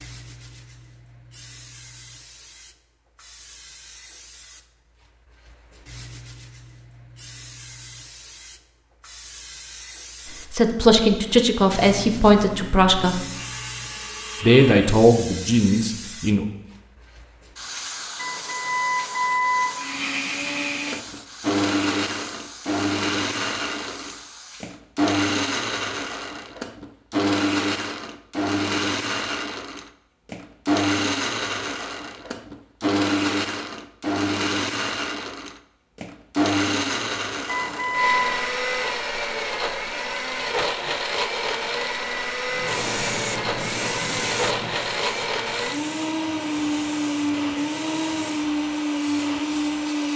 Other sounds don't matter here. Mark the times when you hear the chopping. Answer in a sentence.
The chopping can't be heard in this clip.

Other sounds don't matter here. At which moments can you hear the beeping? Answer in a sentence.
You can hear the beeping from 18.1 to 19.9 s and from 37.5 to 38.3 s.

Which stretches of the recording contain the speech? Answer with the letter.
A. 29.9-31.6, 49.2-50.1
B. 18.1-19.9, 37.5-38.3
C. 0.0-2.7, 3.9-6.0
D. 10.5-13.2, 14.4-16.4
D.